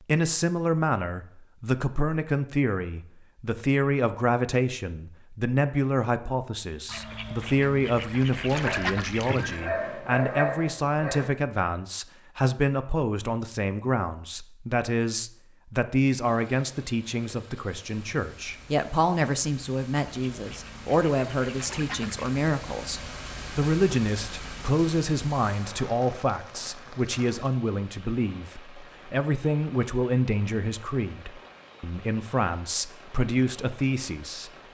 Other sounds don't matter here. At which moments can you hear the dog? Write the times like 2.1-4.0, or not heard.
8.6-11.3.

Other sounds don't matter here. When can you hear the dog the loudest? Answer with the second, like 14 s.
10 s.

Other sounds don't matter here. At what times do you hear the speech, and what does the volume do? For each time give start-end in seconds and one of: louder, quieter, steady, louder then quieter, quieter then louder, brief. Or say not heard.
0.1-34.5 steady.